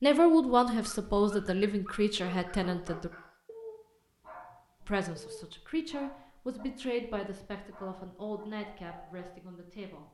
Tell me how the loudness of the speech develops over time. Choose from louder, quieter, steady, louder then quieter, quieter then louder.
quieter.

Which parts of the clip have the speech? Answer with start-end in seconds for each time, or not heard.
0.0-3.1, 4.8-10.0.